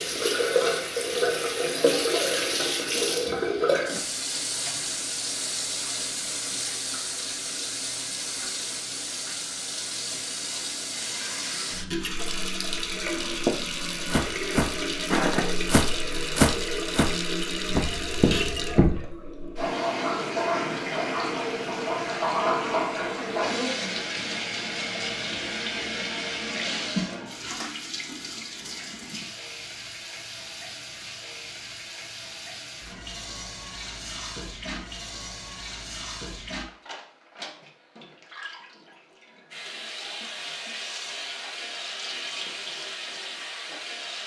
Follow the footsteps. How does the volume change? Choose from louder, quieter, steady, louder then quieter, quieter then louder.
louder then quieter.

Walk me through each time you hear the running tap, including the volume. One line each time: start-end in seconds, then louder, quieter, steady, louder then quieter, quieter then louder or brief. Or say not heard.
0.0-44.2 quieter.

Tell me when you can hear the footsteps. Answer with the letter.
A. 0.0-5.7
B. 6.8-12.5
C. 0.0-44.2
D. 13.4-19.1
D.